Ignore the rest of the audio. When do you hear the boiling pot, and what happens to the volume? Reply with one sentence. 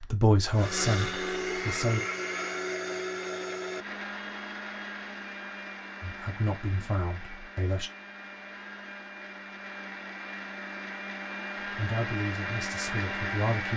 The boiling pot can't be heard in this clip.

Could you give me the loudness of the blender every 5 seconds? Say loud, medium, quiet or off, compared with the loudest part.
loud, medium, loud.